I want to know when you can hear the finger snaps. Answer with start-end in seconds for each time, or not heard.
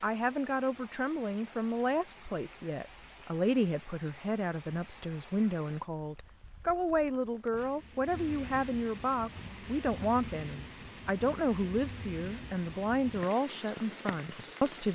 not heard.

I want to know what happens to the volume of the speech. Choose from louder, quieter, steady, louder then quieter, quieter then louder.
steady.